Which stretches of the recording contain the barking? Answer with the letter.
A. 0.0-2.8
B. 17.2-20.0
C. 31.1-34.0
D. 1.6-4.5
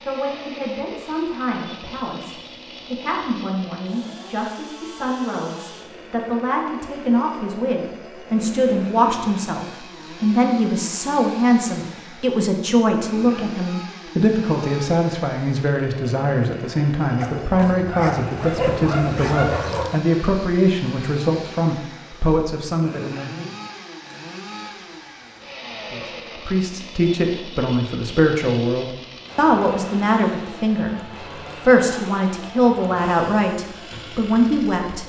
B.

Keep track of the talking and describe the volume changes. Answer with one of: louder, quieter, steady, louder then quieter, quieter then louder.
louder.